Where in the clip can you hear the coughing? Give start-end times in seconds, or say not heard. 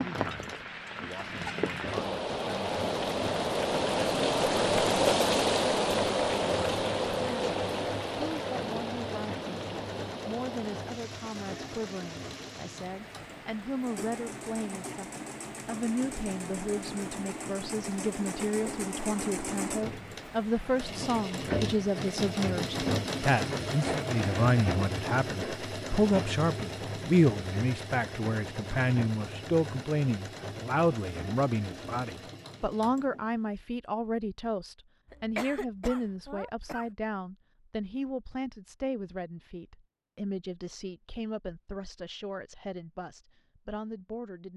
35.0-36.9.